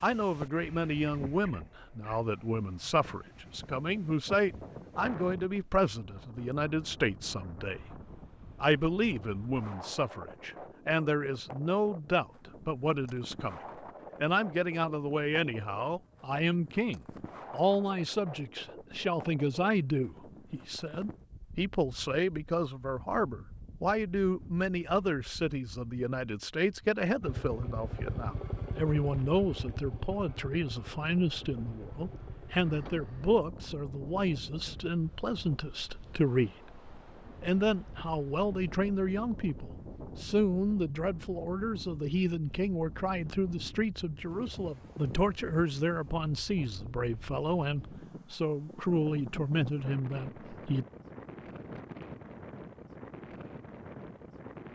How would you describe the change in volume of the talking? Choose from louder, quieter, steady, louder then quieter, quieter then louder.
steady.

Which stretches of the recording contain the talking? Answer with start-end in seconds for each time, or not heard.
0.0-7.8, 8.6-13.6, 14.2-36.8, 37.4-50.9.